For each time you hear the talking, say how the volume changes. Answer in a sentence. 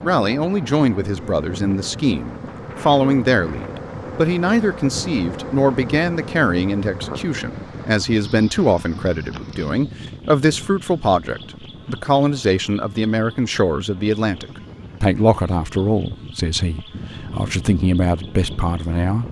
The talking can be heard from 0.0 to 19.2 s, at a steady volume.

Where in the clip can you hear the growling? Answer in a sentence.
The growling can't be heard in this clip.